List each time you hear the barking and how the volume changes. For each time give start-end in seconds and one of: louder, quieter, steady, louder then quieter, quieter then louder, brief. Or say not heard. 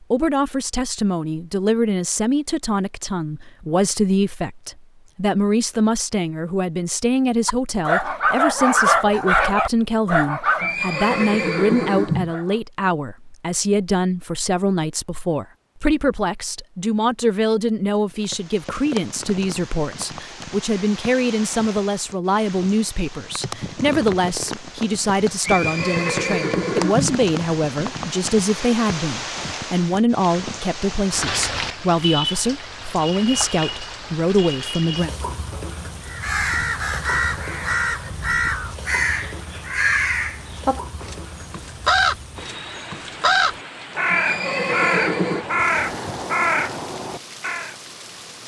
7.5-12.6 quieter.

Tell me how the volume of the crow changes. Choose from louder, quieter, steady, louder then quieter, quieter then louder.
steady.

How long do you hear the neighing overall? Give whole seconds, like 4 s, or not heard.
5 s.